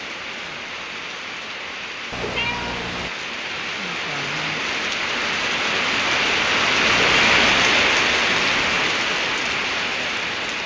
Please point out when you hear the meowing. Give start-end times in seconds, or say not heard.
2.1-3.1, 6.8-7.7.